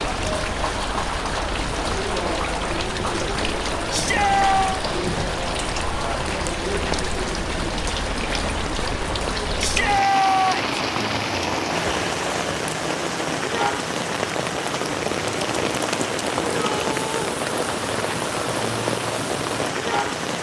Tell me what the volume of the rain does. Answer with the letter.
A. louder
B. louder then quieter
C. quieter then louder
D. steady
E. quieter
D.